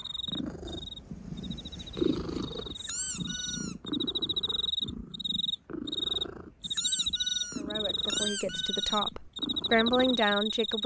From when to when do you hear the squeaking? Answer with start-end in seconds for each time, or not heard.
2.8-3.8, 6.7-9.0.